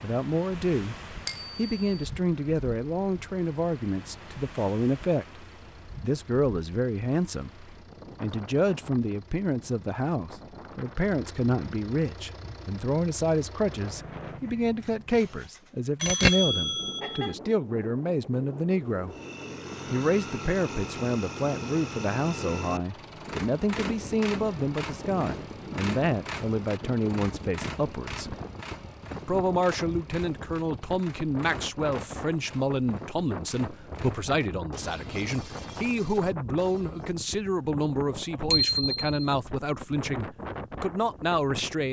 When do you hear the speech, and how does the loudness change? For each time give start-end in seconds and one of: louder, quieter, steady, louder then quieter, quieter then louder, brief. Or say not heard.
0.0-19.1 steady
19.9-28.4 steady
29.2-41.8 steady.